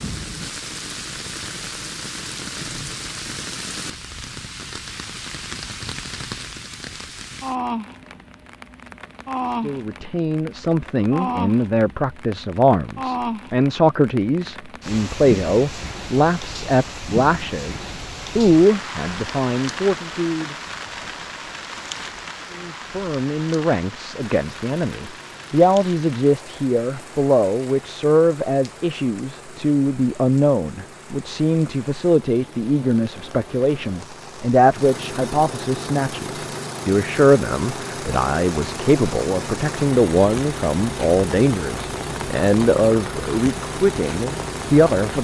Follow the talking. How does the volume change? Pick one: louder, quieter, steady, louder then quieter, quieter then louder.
steady.